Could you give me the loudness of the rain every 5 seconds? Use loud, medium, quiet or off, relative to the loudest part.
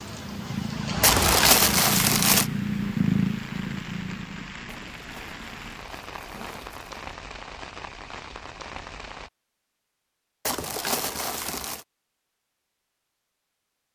loud, medium, off.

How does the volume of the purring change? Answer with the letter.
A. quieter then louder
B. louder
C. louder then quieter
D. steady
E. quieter
C.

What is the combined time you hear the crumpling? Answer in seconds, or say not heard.
5 s.